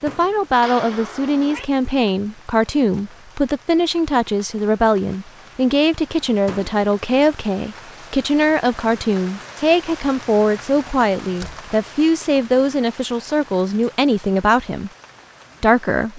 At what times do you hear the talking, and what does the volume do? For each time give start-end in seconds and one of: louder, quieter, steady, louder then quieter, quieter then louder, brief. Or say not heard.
0.0-14.9 steady
15.6-16.1 brief.